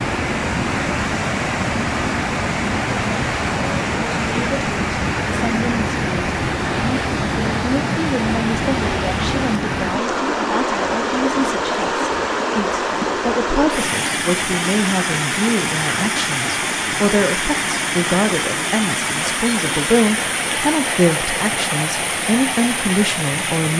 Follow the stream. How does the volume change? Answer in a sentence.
The volume of the stream stays about the same.